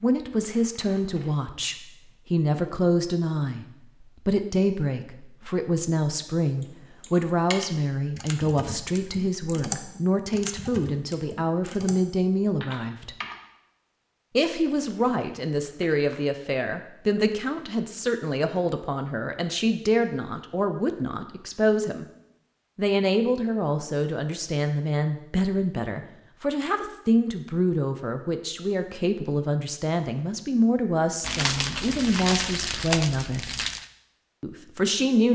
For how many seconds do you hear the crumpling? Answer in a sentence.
You can hear the crumpling for 5 seconds altogether.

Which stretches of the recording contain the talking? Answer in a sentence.
The talking can be heard from 0.0 to 3.6 s, from 4.2 to 13.1 s, from 14.3 to 22.1 s, from 22.8 to 33.5 s and from 34.4 to 35.3 s.